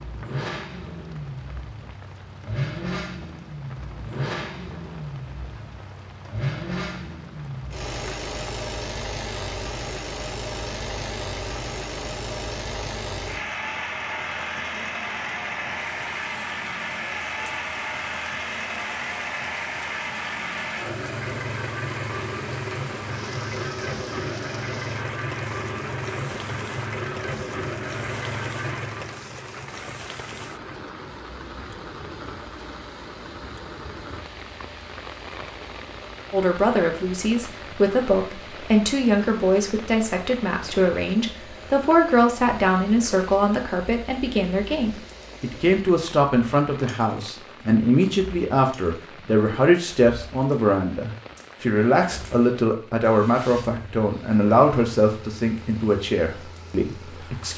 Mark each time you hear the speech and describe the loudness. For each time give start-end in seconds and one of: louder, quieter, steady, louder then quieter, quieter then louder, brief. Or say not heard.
36.3-57.5 steady.